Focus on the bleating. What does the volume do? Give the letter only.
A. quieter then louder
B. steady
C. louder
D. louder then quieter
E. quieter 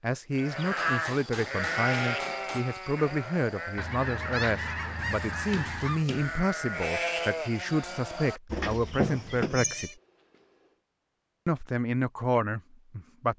A.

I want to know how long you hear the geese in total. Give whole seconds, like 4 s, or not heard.
2 s.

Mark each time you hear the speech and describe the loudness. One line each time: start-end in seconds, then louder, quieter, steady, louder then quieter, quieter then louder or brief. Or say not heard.
0.0-9.9 steady
11.4-13.3 brief.